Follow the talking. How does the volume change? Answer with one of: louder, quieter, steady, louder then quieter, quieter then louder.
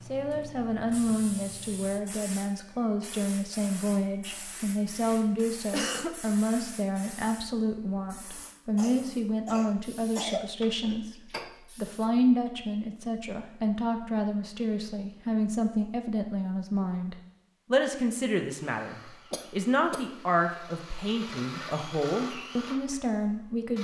steady.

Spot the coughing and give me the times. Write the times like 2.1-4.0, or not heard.
5.4-6.3, 8.8-10.5, 19.3-20.1.